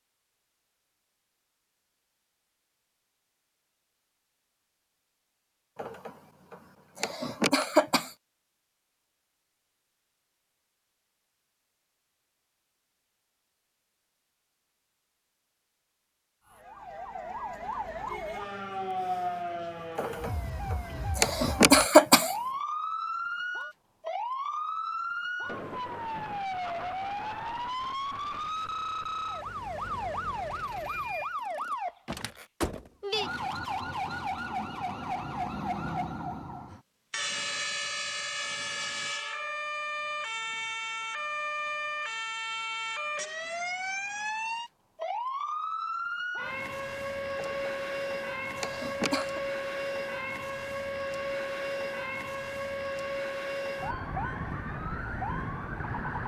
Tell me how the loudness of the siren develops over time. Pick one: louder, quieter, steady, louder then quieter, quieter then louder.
steady.